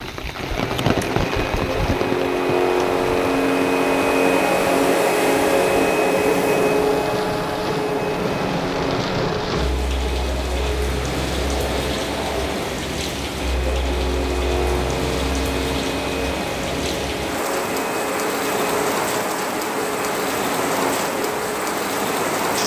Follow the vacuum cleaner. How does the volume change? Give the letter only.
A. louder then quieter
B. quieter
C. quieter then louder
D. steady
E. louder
B.